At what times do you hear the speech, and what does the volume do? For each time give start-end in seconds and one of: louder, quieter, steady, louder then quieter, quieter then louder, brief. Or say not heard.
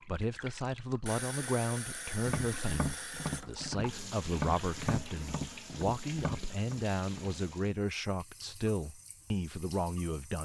0.1-10.4 steady.